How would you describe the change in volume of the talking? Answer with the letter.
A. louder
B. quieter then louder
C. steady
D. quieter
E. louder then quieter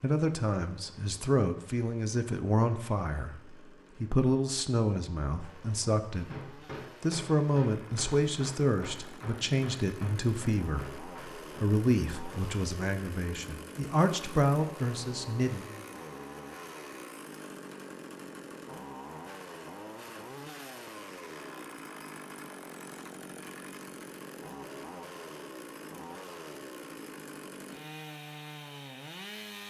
C.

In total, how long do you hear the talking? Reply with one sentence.
The talking can be heard for 16 seconds in total.